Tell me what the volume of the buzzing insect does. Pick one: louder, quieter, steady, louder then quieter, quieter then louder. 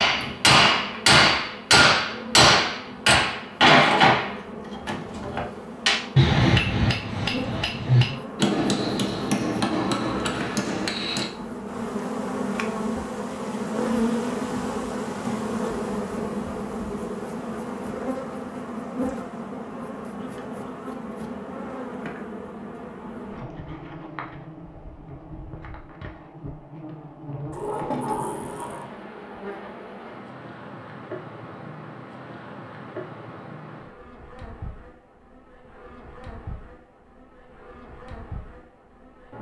louder then quieter.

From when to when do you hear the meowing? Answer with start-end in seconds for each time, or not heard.
not heard.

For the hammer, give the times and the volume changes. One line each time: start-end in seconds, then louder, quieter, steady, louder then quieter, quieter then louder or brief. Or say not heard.
0.0-11.3 quieter.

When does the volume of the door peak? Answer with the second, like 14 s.
28 s.